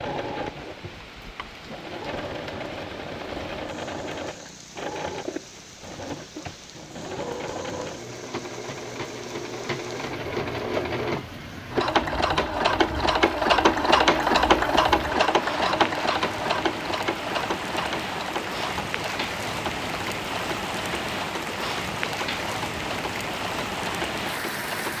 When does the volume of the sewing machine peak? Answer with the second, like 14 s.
14 s.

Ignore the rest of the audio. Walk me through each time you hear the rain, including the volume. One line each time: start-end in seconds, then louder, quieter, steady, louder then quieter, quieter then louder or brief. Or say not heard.
0.0-24.9 louder.